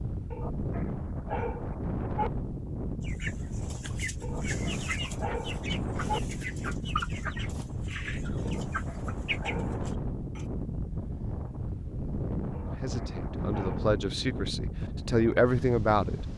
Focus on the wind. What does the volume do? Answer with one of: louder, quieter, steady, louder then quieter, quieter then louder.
steady.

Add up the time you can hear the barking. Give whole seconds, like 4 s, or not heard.
7 s.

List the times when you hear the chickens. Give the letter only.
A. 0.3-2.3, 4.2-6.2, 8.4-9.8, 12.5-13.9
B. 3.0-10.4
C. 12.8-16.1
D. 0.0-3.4
B.